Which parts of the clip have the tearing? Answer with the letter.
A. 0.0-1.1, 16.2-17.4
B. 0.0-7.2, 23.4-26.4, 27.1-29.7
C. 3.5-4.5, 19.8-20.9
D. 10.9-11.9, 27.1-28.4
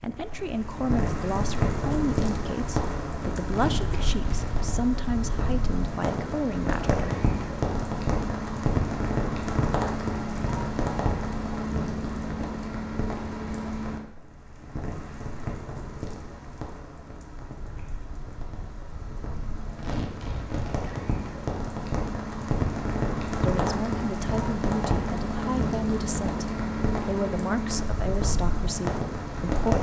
C.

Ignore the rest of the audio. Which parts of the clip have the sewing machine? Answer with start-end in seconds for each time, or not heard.
not heard.